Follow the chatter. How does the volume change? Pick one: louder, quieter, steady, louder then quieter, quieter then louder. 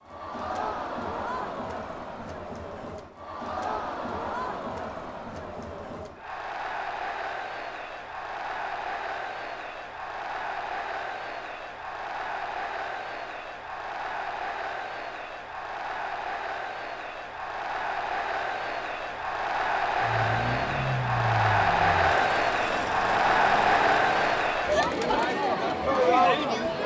louder.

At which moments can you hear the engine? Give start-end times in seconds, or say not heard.
20.0-24.6.